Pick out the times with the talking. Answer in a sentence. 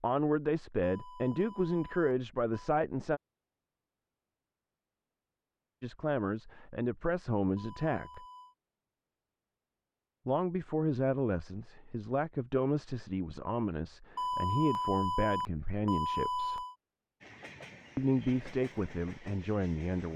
You can hear the talking from 0.0 to 3.2 s, from 5.8 to 8.2 s, from 10.2 to 16.6 s and from 17.9 to 20.1 s.